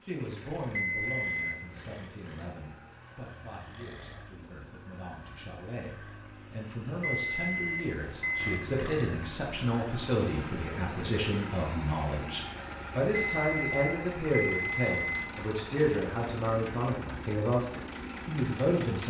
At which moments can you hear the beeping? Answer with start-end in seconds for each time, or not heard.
0.8-1.8, 7.0-8.8, 13.2-15.3.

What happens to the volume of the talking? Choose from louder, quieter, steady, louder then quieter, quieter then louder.
louder.